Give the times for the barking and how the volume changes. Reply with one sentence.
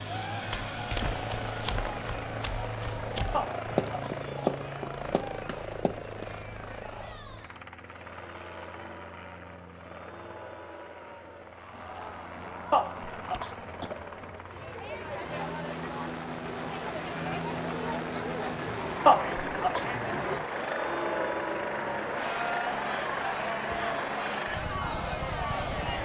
The barking can't be heard in this clip.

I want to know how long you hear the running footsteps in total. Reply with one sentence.
The running footsteps can be heard for 6 seconds in total.